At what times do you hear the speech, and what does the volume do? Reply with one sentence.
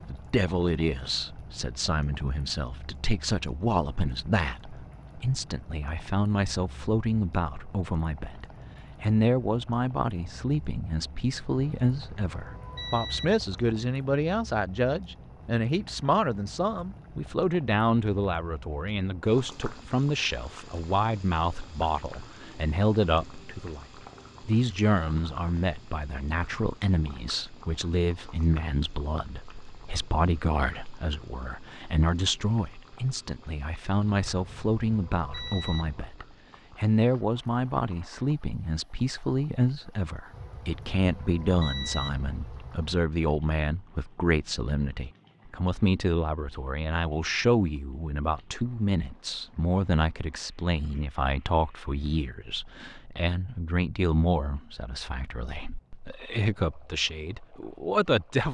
You can hear the speech from 0.1 to 58.4 s, at a steady volume.